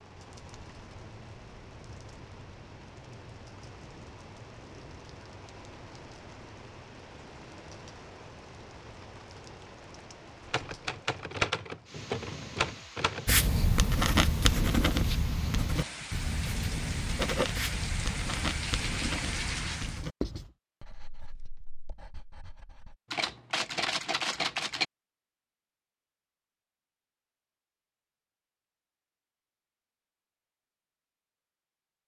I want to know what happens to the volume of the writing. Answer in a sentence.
The loudness of the writing goes down.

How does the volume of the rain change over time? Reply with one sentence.
The volume of the rain goes up.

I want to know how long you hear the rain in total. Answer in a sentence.
You can hear the rain for 20 seconds altogether.